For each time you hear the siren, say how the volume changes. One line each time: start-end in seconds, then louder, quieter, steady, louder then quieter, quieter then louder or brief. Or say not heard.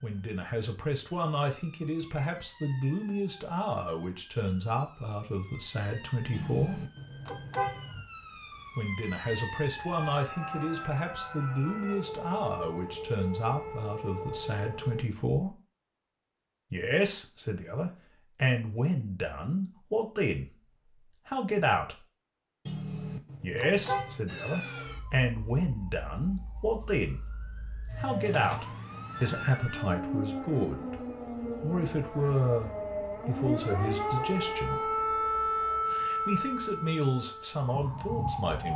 0.0-15.1 louder
24.2-38.7 louder.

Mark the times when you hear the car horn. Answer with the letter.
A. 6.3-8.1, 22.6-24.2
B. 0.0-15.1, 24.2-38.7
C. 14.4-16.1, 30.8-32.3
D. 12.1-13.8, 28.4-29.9
A.